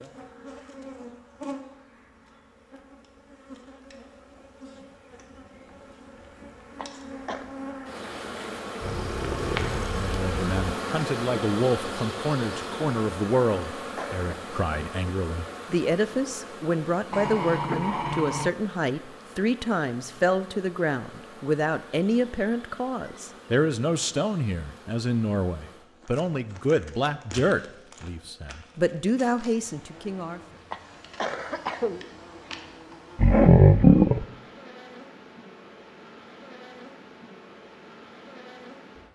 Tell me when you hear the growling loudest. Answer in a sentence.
The volume of the growling peaks at 34 seconds.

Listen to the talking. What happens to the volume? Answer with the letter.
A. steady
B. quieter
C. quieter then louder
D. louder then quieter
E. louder
A.